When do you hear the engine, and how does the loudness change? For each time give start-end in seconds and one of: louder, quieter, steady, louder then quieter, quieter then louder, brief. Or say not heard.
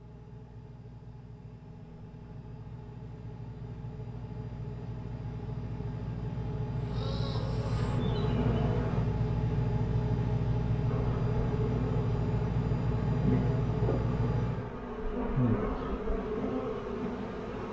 0.0-14.7 louder.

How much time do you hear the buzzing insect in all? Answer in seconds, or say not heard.
9 s.